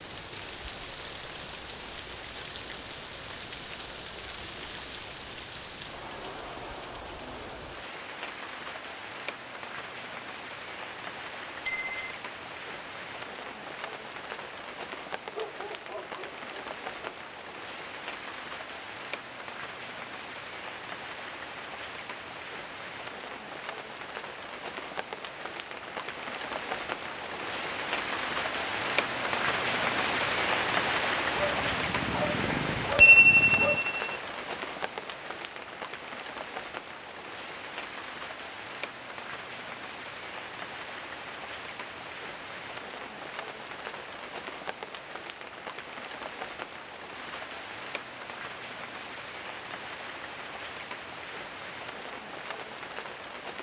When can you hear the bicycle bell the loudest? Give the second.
33 s.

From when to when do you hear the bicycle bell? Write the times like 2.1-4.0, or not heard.
11.7-12.1, 32.5-34.0.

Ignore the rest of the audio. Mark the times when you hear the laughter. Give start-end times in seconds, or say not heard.
not heard.